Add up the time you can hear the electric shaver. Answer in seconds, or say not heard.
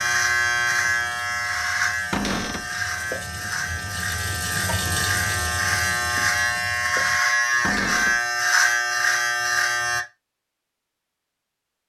10 s.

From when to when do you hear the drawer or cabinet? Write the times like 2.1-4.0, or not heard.
2.1-2.7, 7.6-8.2.